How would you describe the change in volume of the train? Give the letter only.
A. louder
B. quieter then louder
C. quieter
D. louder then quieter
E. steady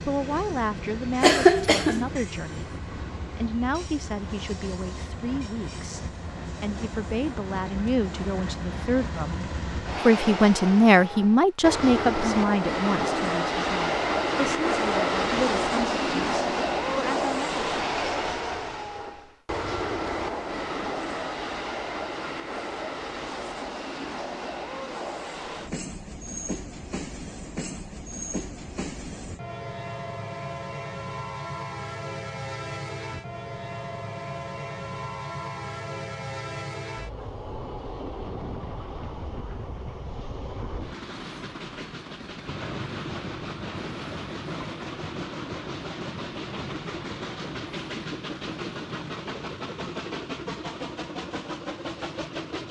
D.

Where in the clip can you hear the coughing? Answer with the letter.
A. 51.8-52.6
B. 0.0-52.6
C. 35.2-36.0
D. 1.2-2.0
D.